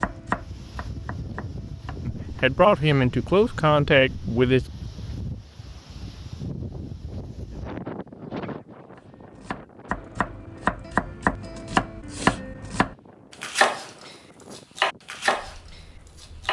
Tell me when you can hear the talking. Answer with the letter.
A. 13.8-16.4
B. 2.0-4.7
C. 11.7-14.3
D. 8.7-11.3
B.